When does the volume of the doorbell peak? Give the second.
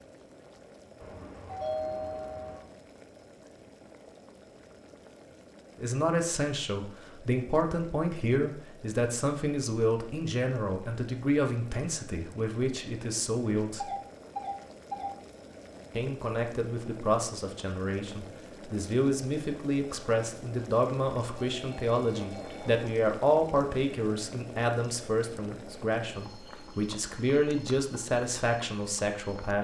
2 s.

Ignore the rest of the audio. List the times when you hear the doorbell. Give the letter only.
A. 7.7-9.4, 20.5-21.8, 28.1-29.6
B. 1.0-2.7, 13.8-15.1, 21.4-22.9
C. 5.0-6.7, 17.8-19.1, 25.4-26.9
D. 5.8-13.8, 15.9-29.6
B.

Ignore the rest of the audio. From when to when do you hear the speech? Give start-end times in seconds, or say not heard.
5.8-13.8, 15.9-29.6.